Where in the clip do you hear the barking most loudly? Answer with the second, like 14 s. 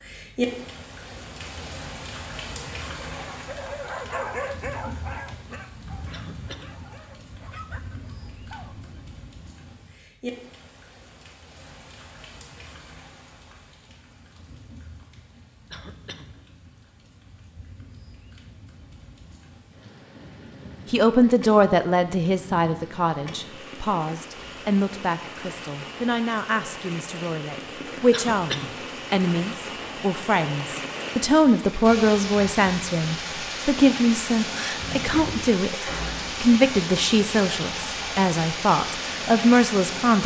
4 s.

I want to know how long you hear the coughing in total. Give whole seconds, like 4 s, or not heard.
2 s.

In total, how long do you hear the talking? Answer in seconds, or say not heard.
19 s.